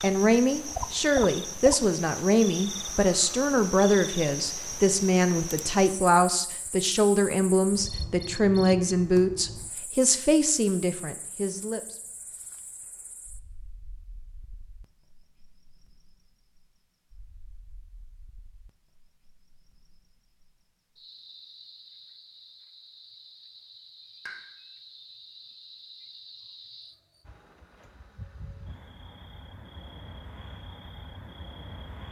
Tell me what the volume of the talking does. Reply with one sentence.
The volume of the talking stays about the same.